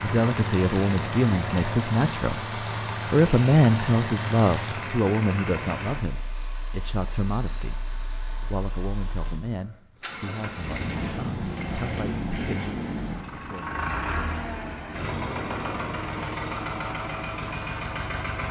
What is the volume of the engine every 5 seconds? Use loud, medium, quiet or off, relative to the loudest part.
loud, medium, loud, loud.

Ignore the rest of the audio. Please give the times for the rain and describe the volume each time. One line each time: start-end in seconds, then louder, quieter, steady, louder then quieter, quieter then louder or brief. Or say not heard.
not heard.